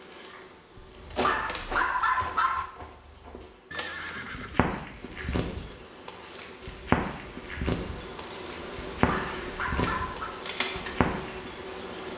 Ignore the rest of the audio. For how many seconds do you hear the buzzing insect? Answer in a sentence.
You can hear the buzzing insect for 12 seconds altogether.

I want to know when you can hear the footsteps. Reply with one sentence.
The footsteps can be heard from 0.9 to 11.5 s.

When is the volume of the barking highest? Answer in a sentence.
The loudest moment of the barking is at 2 seconds.